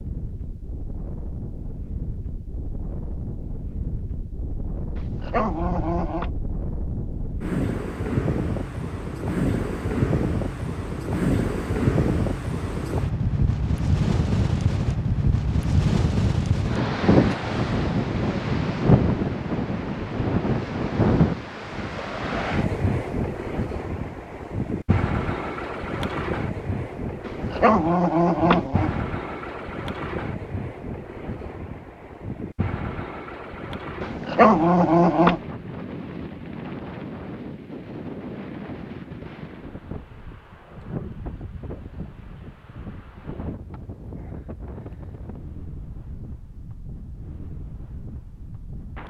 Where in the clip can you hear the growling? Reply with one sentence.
You can hear the growling from 5.0 to 6.3 s, from 27.2 to 29.0 s and from 34.0 to 35.4 s.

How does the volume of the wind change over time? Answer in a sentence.
The loudness of the wind goes up, then down.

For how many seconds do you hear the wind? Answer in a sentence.
You can hear the wind for 49 seconds altogether.